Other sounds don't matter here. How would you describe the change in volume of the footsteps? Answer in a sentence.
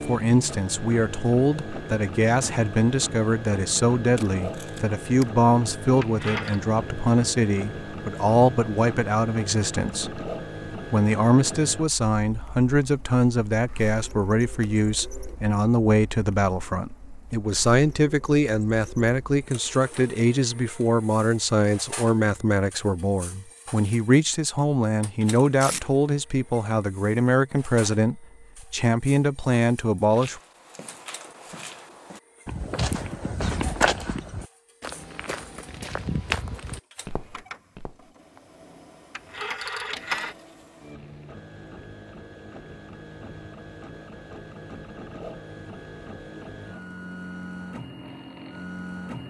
The loudness of the footsteps goes up, then down.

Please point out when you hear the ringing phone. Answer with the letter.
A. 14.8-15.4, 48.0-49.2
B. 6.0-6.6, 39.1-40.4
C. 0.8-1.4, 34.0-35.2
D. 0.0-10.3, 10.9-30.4
B.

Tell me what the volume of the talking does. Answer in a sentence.
The volume of the talking stays about the same.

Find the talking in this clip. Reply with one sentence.
The talking can be heard from 0.0 to 10.3 s and from 10.9 to 30.4 s.